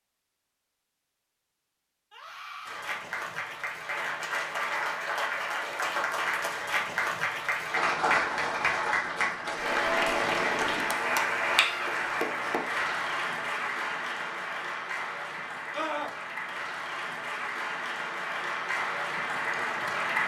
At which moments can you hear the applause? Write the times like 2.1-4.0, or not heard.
2.6-20.2.